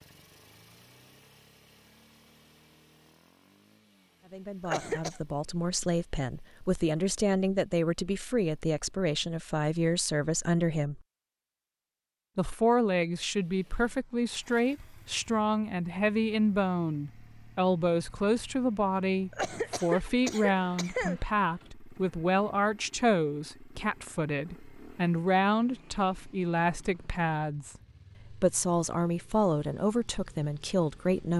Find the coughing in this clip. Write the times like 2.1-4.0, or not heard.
4.6-5.2, 19.3-21.2.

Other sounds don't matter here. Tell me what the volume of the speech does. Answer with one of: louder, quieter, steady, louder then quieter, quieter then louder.
steady.